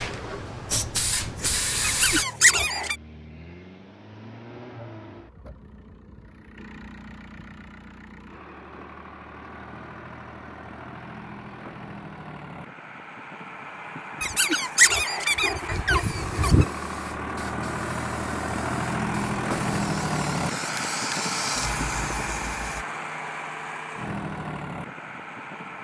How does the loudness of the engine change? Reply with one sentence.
The loudness of the engine goes up.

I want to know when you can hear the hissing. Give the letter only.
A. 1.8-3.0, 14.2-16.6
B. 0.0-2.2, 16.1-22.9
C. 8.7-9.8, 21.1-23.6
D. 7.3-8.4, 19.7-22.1
B.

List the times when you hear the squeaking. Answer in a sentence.
The squeaking can be heard from 1.8 to 3.0 s and from 14.2 to 16.6 s.